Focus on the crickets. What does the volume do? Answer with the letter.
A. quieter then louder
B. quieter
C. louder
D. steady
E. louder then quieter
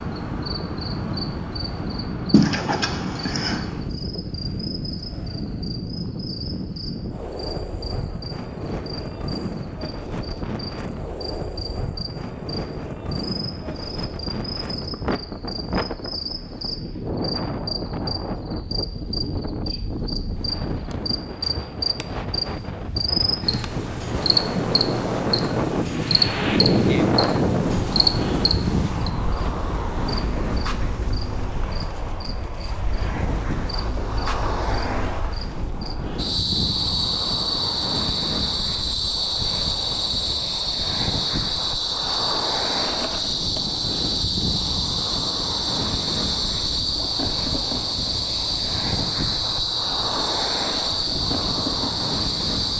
C.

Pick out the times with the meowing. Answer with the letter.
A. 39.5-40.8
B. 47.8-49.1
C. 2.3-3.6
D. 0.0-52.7
C.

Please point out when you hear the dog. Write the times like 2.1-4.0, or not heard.
not heard.